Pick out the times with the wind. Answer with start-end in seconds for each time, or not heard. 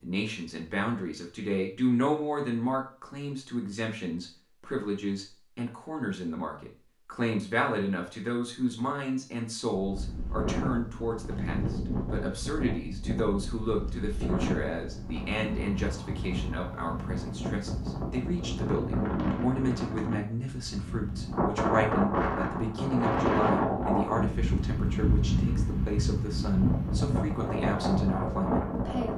9.7-29.1.